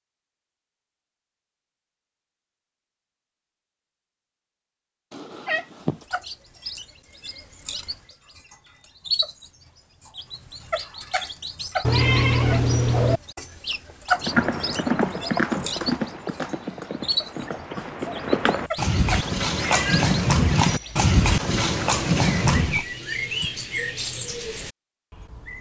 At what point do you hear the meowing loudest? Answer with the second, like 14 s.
12 s.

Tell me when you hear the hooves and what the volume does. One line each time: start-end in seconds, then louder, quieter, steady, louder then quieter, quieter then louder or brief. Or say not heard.
14.1-22.9 quieter then louder.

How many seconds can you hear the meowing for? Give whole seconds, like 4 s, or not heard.
4 s.